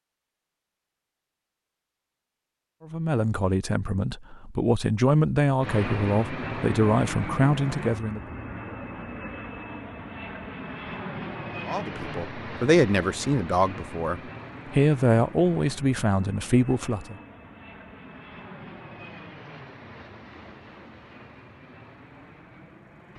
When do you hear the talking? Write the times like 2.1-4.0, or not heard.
2.9-8.2, 11.7-17.1.